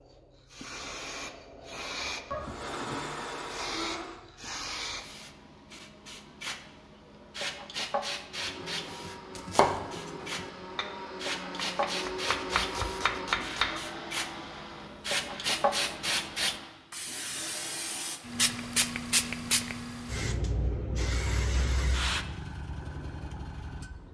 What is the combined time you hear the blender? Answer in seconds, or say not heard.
12 s.